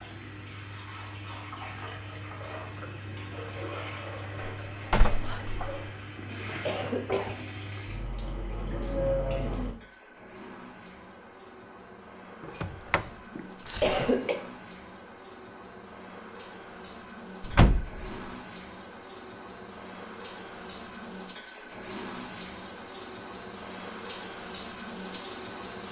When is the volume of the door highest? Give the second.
18 s.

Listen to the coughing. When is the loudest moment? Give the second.
14 s.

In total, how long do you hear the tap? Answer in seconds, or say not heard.
26 s.